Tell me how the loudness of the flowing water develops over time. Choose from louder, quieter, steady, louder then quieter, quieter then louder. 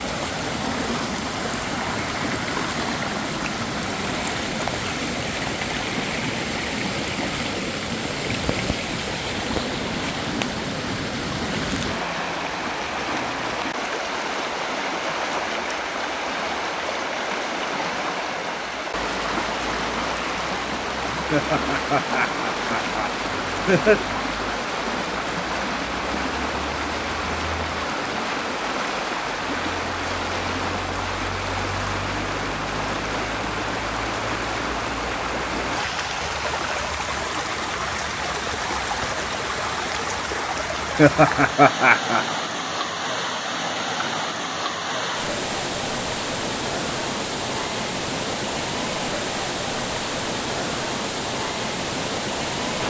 steady.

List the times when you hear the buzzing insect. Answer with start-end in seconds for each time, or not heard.
not heard.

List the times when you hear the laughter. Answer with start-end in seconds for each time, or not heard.
21.3-24.0, 41.0-42.2.